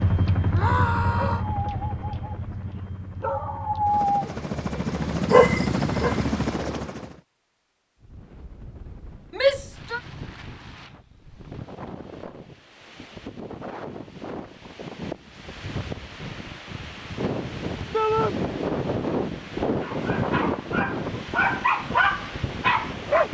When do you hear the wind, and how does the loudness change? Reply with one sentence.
You can hear the wind from 8.0 to 23.2 s, getting louder.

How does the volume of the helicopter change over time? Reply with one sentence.
The volume of the helicopter goes down, then up.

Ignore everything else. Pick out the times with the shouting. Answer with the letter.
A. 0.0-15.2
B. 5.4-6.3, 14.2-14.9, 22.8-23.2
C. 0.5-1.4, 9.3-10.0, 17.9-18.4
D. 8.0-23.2
C.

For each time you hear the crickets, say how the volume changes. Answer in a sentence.
You can't hear the crickets here.